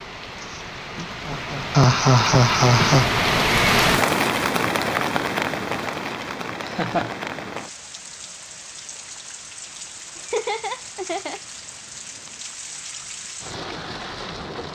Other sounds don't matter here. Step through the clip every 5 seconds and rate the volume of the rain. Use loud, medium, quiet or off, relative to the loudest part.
loud, medium, quiet.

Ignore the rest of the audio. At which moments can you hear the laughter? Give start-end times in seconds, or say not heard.
0.4-3.0, 6.2-7.2, 10.2-11.4.